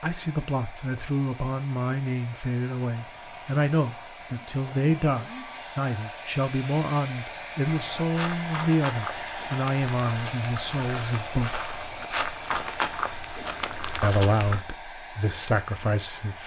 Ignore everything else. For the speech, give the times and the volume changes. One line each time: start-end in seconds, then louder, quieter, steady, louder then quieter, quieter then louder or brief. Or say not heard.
0.0-11.7 steady
14.0-16.4 brief.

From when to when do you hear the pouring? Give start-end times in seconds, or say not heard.
not heard.